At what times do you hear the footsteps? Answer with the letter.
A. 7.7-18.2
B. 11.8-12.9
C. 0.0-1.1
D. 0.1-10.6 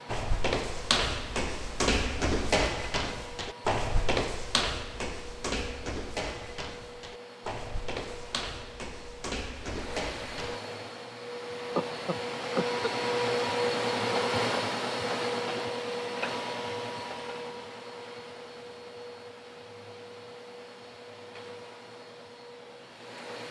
D.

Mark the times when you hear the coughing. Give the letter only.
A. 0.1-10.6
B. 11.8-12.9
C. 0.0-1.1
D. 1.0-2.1
B.